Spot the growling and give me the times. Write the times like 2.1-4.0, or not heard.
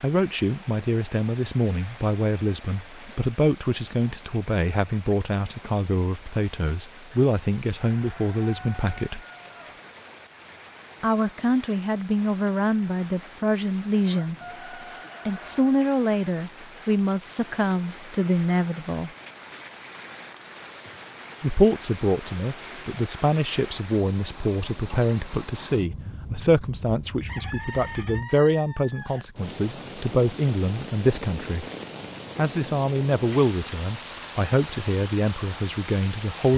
not heard.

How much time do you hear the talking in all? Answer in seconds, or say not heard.
31 s.